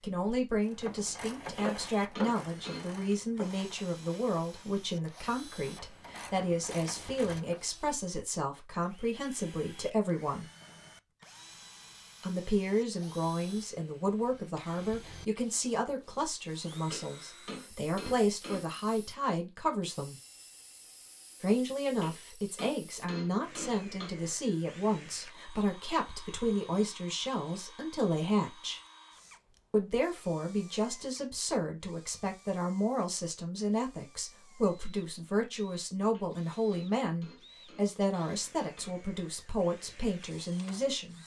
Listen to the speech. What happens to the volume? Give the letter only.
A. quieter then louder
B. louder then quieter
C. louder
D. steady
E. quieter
D.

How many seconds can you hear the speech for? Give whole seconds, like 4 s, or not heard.
37 s.